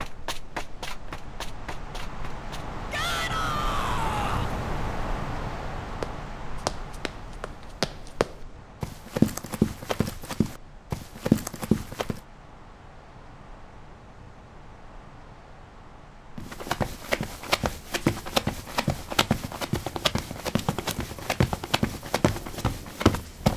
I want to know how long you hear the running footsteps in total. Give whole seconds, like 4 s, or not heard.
16 s.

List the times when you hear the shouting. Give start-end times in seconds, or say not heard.
2.9-4.5.